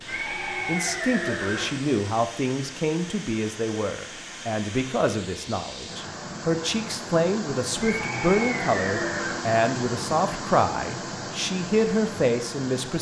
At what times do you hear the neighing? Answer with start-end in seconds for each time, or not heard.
0.1-1.9, 7.8-9.4.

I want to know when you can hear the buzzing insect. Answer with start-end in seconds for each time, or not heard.
not heard.